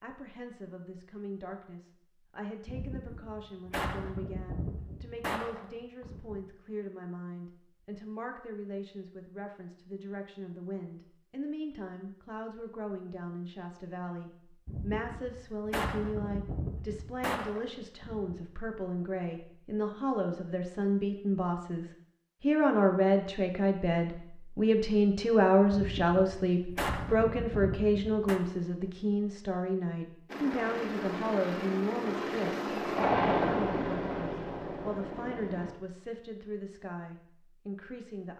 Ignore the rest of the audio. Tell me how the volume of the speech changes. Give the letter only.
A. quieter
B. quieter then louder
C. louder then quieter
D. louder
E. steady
C.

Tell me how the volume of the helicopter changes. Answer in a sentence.
The loudness of the helicopter goes up, then down.